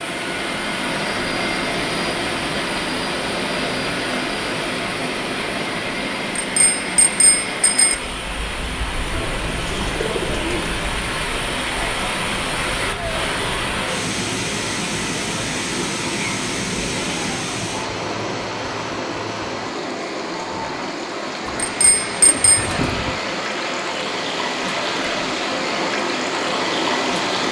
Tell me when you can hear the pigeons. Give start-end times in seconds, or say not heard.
9.0-10.8, 21.4-23.2.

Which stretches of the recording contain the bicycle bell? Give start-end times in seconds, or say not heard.
6.3-8.0, 21.6-22.6.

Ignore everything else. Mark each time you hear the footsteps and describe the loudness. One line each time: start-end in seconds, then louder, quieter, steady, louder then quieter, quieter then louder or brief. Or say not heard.
not heard.